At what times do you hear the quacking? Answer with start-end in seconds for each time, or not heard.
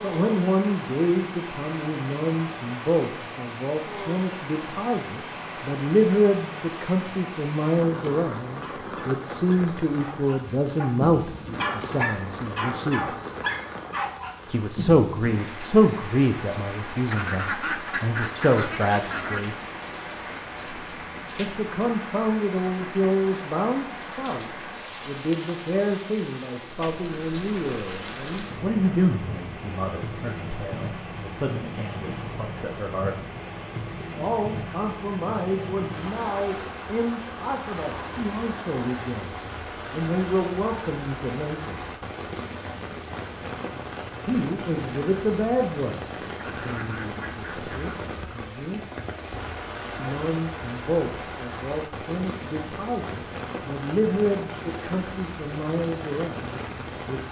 17.1-19.4, 46.4-48.1.